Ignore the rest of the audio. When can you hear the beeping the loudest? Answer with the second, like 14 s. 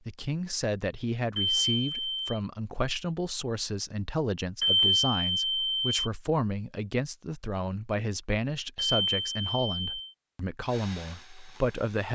5 s.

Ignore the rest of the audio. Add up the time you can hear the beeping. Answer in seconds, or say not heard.
4 s.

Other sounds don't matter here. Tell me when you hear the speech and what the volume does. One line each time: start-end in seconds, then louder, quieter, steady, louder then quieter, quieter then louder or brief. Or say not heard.
0.1-12.1 steady.